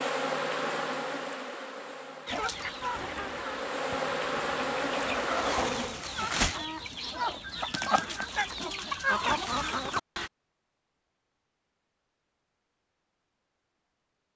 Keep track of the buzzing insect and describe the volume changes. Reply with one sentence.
The loudness of the buzzing insect goes down, then up.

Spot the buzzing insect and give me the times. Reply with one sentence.
The buzzing insect can be heard from 0.0 to 6.0 s.